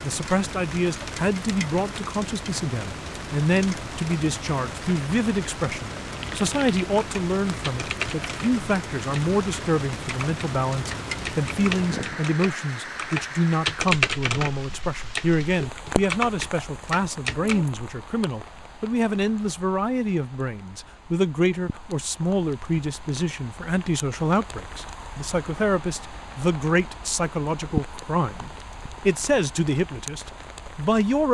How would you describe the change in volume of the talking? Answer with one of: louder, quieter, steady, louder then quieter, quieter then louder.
steady.